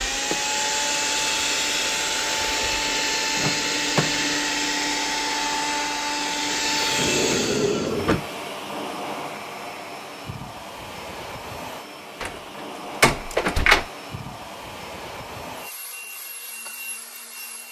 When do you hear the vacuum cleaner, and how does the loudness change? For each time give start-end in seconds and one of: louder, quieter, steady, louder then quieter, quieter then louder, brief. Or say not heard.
0.0-17.6 quieter.